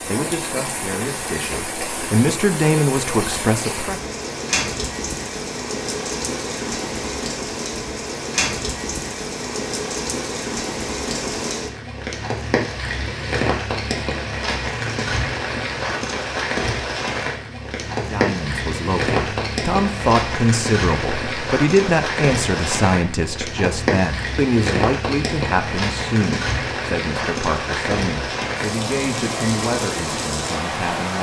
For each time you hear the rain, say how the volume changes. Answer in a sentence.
The rain can be heard from 0.0 to 31.1 s, at a steady volume.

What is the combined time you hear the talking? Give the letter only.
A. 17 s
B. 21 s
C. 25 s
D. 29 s
A.